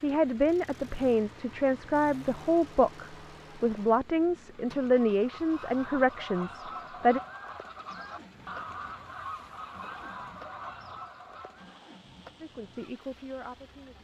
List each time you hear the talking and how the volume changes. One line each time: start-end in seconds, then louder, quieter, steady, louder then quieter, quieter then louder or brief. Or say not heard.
0.0-7.2 steady
12.4-14.0 brief.